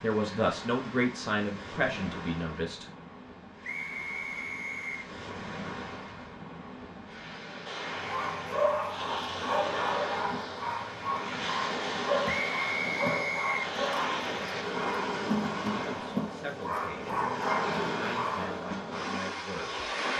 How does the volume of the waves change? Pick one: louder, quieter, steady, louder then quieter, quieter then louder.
louder.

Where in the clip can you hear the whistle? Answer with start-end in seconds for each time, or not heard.
3.6-5.0, 12.2-13.7.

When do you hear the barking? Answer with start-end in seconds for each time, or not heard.
8.0-18.5.